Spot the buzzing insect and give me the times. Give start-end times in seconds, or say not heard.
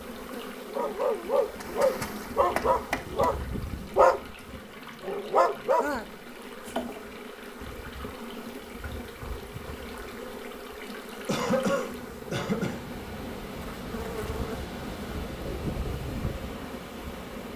0.0-17.5.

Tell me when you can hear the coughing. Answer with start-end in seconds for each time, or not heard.
11.2-12.8.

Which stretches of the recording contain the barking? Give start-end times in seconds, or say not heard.
0.7-6.0.